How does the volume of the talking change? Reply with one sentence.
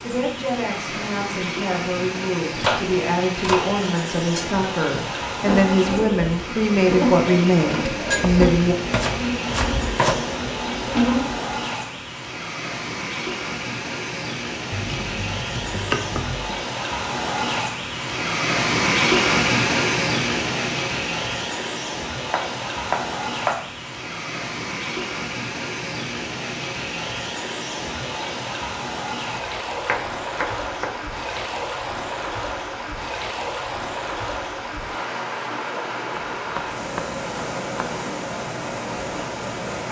The volume of the talking goes up.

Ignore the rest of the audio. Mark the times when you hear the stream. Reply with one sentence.
You can hear the stream from 0.0 to 39.8 s.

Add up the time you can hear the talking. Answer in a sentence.
You can hear the talking for 9 seconds altogether.